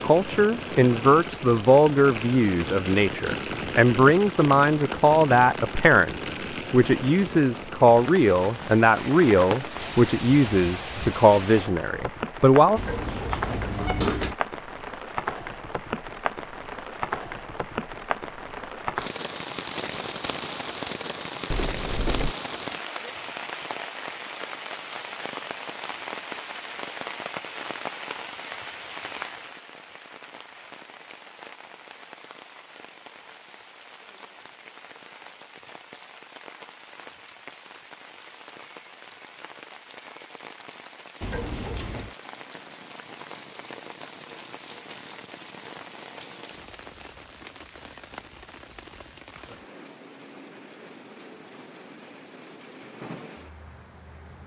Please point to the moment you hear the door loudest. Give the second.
14 s.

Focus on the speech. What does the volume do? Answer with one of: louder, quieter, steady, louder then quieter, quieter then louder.
steady.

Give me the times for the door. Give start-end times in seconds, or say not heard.
12.8-14.3, 21.5-22.4, 41.2-42.1.